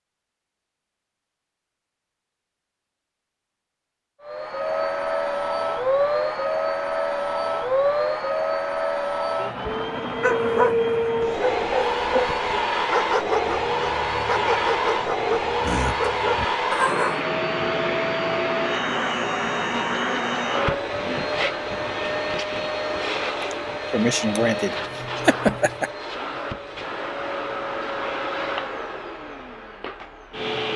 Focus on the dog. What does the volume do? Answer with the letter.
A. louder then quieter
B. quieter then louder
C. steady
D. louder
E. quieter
C.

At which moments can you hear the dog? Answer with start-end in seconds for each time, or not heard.
10.2-17.2.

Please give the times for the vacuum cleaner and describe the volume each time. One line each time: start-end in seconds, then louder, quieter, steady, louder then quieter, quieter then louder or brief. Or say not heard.
4.2-30.7 quieter.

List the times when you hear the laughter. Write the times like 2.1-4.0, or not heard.
23.5-25.9.